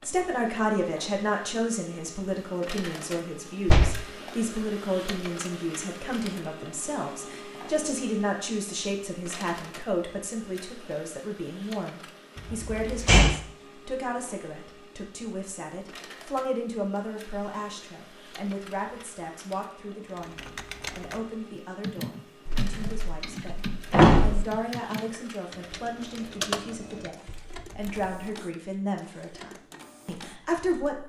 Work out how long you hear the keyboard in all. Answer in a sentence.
The keyboard can be heard for 8 seconds in total.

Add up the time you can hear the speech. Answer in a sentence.
You can hear the speech for 31 seconds altogether.